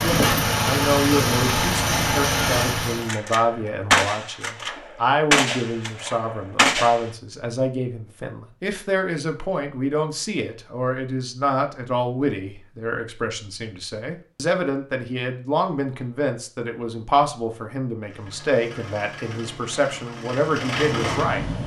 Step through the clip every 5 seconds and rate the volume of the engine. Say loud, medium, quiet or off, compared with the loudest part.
loud, off, off, quiet, medium.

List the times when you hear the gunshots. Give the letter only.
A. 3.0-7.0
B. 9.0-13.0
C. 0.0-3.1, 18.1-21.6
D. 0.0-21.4
A.